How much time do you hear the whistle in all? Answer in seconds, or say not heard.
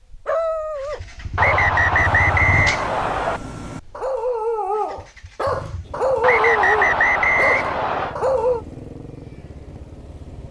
4 s.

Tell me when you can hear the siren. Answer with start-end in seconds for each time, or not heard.
not heard.